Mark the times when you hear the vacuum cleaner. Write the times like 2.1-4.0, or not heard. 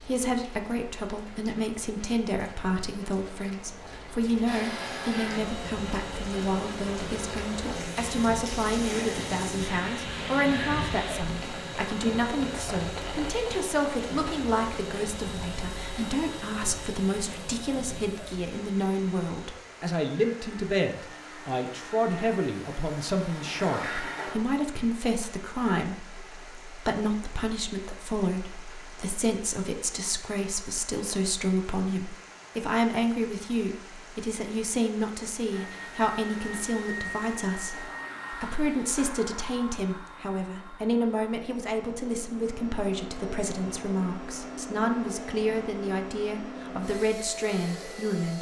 4.5-24.4, 35.5-48.3.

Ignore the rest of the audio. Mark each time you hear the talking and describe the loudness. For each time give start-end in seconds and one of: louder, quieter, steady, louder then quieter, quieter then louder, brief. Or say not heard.
0.1-48.3 steady.